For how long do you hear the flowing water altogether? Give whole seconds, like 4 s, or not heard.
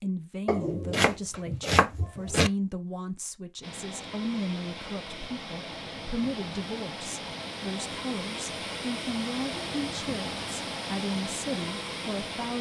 9 s.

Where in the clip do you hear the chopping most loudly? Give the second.
2 s.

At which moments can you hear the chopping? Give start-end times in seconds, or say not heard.
0.5-2.5.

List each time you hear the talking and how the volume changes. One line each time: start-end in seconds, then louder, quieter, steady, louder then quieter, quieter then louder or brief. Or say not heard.
0.0-12.5 steady.